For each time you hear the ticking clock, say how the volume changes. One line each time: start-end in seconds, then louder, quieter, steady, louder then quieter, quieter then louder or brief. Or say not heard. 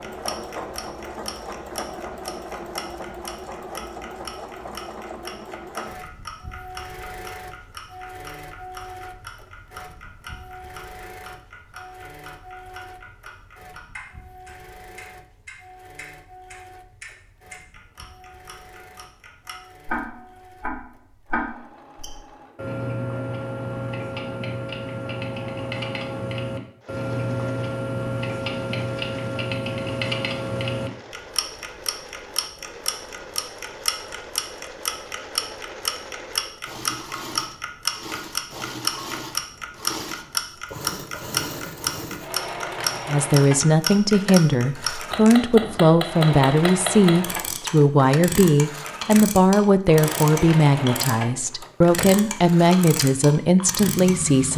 0.0-51.1 louder
51.8-54.5 brief.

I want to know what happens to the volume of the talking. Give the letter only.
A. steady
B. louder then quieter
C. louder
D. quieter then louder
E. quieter
A.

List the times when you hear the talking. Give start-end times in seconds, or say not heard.
43.0-54.5.